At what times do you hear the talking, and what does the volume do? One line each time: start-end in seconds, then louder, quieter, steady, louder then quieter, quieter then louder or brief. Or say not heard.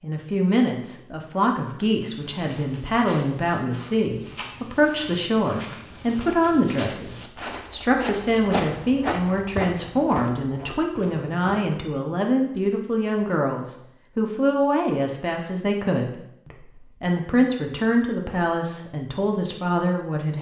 0.0-20.3 steady.